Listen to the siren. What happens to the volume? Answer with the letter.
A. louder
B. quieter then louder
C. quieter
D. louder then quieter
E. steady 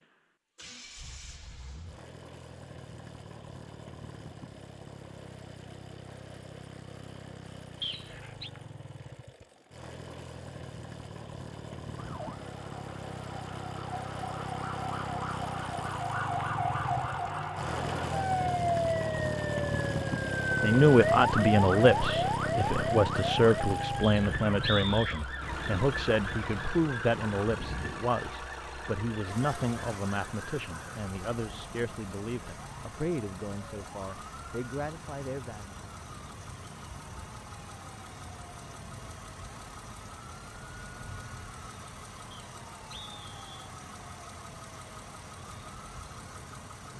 C.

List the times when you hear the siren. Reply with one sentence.
You can hear the siren from 11.9 to 46.9 s.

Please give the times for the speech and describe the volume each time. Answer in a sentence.
You can hear the speech from 20.6 to 35.8 s, getting quieter.